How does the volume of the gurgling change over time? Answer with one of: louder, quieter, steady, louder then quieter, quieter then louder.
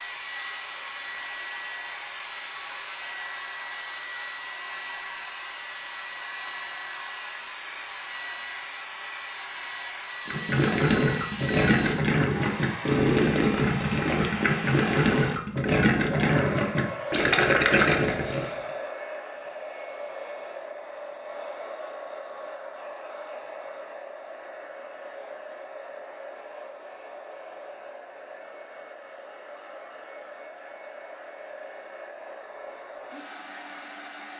steady.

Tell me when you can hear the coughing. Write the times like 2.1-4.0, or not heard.
not heard.